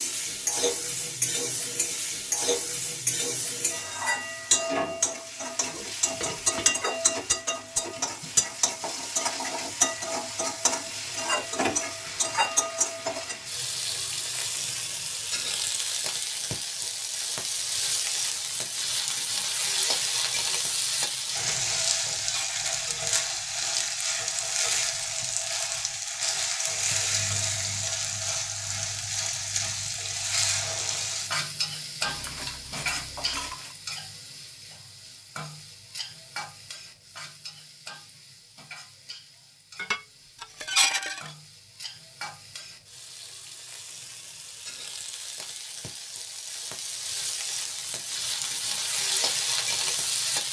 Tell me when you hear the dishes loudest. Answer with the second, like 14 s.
41 s.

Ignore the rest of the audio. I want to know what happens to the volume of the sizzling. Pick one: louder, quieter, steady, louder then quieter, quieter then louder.
quieter.